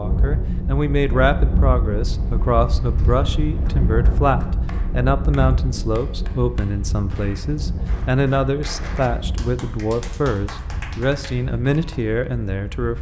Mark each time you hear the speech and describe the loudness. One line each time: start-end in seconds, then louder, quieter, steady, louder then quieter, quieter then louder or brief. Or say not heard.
0.0-12.9 steady.